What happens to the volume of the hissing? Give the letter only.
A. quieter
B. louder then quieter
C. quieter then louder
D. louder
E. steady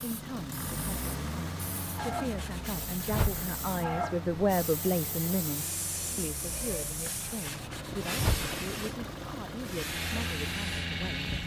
E.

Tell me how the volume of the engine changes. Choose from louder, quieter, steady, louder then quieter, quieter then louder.
quieter then louder.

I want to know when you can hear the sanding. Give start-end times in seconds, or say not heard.
1.9-3.5, 7.0-8.6.